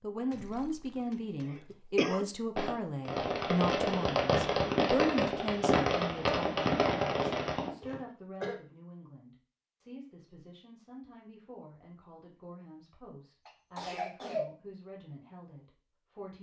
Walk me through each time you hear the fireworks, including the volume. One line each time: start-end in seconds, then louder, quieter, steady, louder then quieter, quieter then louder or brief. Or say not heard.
2.5-7.7 steady.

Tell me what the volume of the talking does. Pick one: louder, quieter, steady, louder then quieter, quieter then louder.
quieter.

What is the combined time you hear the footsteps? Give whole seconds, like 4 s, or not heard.
not heard.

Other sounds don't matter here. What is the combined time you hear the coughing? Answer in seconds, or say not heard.
4 s.